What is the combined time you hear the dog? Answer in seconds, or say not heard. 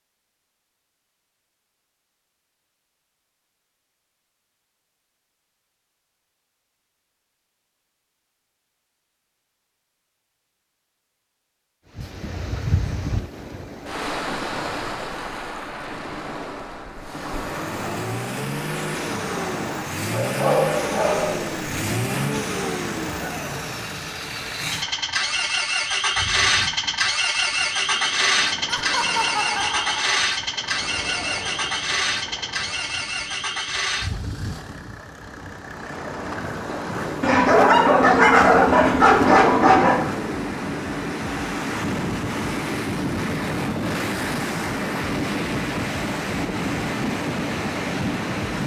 4 s.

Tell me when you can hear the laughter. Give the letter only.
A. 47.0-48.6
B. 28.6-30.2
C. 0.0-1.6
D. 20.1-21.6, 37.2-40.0
B.